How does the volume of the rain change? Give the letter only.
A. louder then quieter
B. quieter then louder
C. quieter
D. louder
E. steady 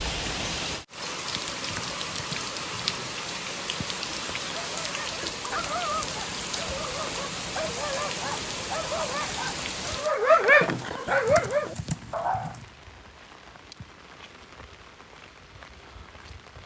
C.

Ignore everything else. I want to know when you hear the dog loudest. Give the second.
10 s.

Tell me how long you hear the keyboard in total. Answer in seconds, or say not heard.
3 s.